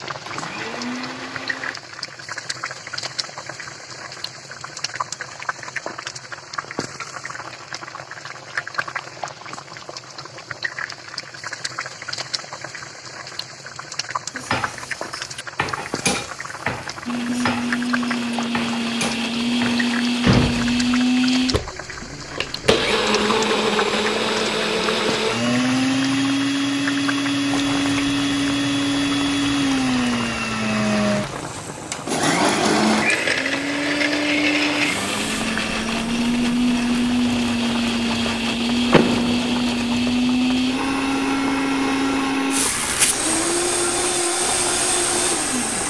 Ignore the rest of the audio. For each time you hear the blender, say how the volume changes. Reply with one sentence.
The blender can be heard briefly from 0.1 to 1.8 s; and from 17.1 to 45.8 s, at a steady volume.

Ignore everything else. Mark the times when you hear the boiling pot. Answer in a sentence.
The boiling pot can be heard from 0.0 to 45.8 s.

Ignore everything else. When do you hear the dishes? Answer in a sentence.
You can hear the dishes from 14.3 to 19.9 s.